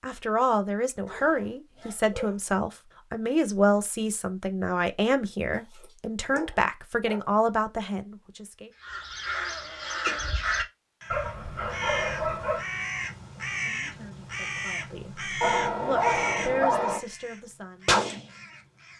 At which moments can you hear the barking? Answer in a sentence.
You can hear the barking from 1.1 to 2.4 s, from 5.5 to 7.3 s, from 11.1 to 12.7 s and from 15.4 to 17.0 s.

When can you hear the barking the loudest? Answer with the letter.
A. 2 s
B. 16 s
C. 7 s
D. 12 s
B.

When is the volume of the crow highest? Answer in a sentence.
The loudest moment of the crow is at 18 seconds.